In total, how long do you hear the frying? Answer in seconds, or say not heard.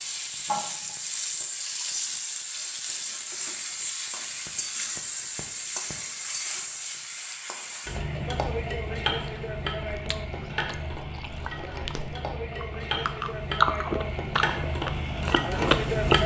16 s.